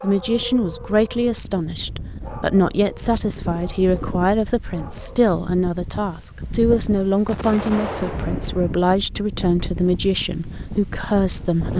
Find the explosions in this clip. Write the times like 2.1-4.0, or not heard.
7.2-8.8.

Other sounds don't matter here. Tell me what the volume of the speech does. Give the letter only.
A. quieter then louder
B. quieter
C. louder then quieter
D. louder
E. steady
E.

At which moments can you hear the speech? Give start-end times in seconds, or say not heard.
0.0-11.7.